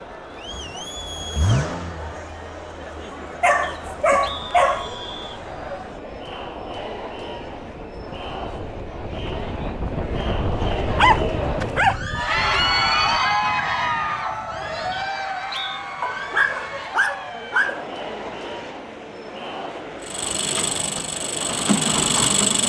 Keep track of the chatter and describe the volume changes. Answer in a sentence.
The loudness of the chatter goes up, then down.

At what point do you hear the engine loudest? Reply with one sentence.
The volume of the engine peaks at 22 seconds.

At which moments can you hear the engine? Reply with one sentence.
You can hear the engine from 0.0 to 2.3 s and from 20.1 to 22.6 s.